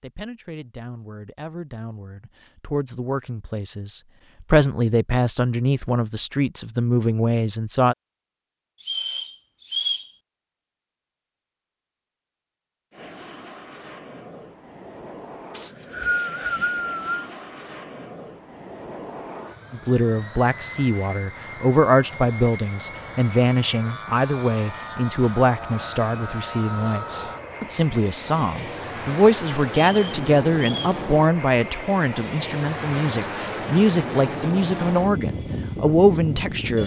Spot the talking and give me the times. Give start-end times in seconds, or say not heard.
0.0-8.0, 19.7-36.8.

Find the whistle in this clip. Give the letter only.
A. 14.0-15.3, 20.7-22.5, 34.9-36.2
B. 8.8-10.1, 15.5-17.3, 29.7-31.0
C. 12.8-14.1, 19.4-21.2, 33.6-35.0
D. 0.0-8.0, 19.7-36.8
B.